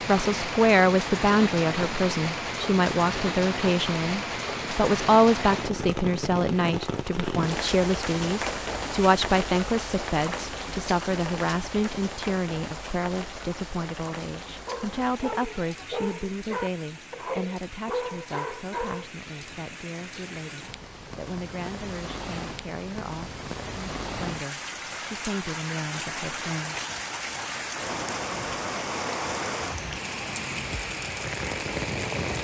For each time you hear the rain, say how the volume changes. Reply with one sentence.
The rain can be heard from 0.0 to 32.3 s, getting quieter then louder.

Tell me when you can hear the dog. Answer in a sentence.
The dog can be heard from 14.7 to 19.1 s.